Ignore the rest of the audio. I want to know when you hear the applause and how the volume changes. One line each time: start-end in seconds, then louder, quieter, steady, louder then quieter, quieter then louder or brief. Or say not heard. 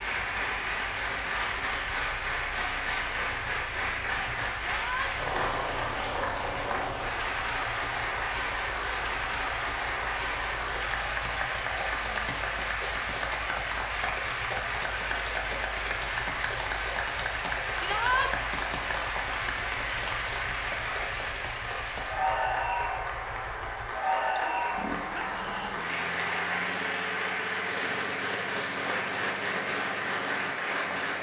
0.0-31.1 steady.